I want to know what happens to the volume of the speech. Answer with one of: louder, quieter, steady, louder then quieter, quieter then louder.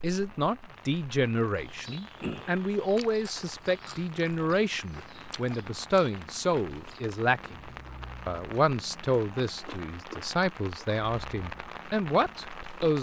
steady.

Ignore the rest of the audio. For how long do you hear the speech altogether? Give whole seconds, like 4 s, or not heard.
13 s.